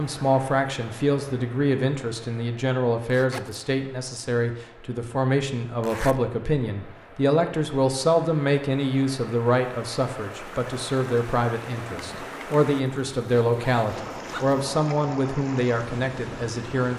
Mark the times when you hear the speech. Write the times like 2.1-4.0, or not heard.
0.0-16.9.